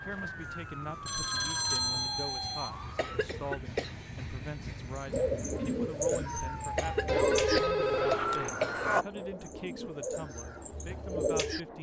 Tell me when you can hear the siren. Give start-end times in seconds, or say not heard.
0.0-3.2, 6.2-9.1.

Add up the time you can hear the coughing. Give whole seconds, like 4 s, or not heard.
3 s.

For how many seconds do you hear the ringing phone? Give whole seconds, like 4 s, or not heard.
3 s.